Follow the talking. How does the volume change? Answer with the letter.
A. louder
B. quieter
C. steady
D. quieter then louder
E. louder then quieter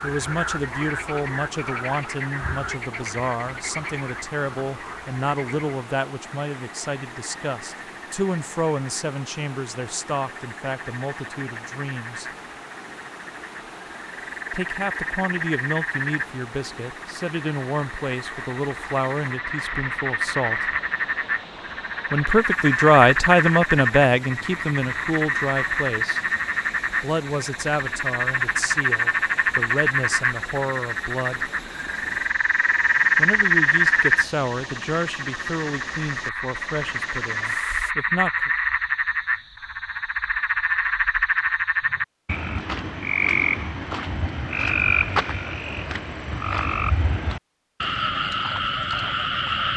E.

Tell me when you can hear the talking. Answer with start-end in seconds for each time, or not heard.
0.0-12.2, 14.5-20.6, 22.1-26.2, 27.0-31.5, 33.1-38.5.